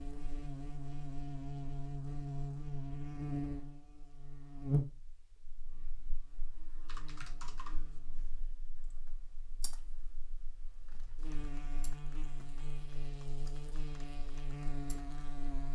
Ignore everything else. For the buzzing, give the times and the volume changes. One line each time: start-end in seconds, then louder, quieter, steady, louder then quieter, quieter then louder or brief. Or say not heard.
0.0-15.6 quieter then louder.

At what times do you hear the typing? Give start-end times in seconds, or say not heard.
6.8-15.3.